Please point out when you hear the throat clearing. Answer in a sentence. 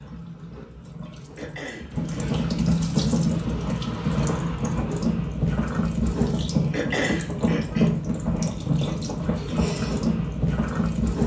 The throat clearing can be heard from 1.4 to 2.5 s and from 6.7 to 7.9 s.